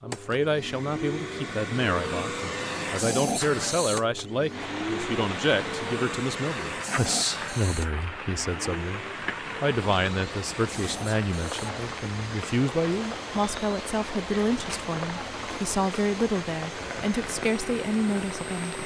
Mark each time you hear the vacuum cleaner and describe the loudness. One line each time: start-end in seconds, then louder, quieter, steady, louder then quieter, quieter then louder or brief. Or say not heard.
0.0-18.8 quieter.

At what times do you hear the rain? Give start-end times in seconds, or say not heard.
4.5-18.8.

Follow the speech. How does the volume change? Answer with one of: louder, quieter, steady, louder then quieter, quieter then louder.
steady.